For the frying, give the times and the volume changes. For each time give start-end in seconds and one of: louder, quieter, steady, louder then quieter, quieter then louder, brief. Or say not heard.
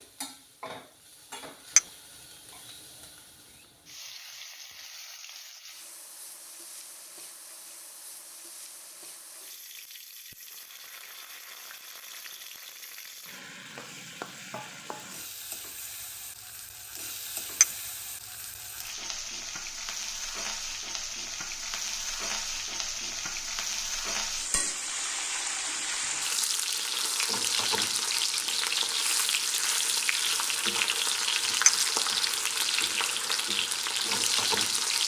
0.0-35.0 louder.